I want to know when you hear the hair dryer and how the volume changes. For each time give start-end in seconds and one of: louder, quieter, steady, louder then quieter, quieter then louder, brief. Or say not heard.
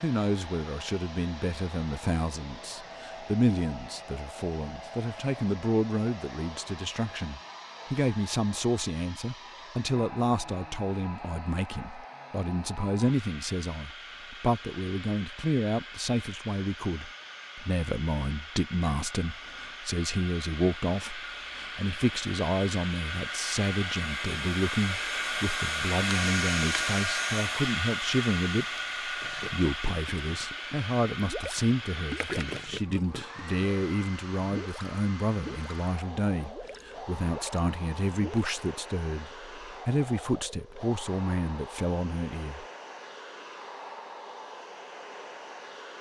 0.0-45.9 louder then quieter.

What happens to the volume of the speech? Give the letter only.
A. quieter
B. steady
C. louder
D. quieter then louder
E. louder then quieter
B.